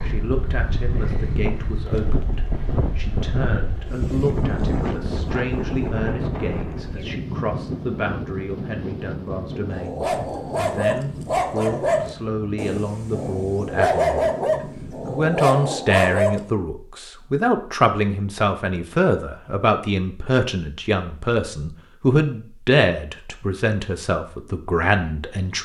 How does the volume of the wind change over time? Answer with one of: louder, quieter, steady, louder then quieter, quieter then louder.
quieter.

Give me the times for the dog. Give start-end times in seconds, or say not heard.
9.7-16.4.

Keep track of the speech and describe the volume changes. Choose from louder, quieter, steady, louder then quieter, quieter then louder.
louder.